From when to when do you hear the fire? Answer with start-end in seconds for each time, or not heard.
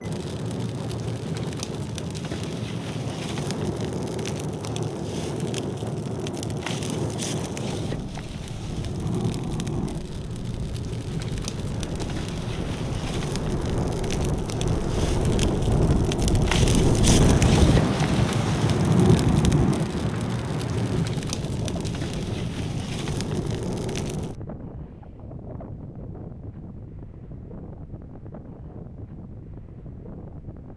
0.0-24.4.